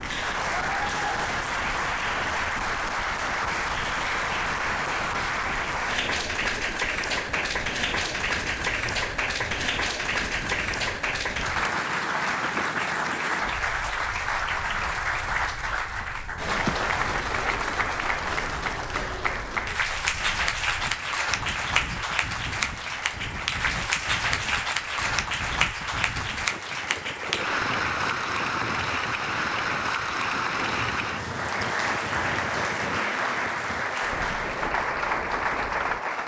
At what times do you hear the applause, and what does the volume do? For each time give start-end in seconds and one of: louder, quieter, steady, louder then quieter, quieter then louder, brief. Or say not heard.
0.0-36.2 steady.